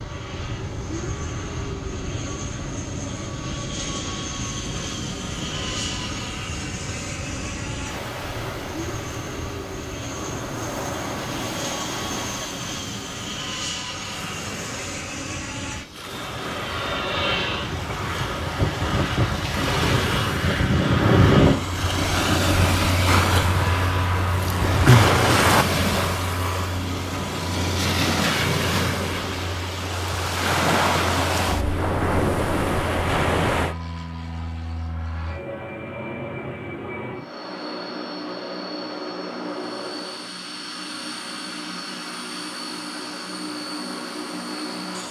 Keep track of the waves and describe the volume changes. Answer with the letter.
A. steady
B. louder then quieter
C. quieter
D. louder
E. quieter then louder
D.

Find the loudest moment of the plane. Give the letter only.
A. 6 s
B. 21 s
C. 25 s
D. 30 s
B.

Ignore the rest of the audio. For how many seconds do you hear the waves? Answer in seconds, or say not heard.
34 s.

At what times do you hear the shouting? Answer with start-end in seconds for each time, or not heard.
not heard.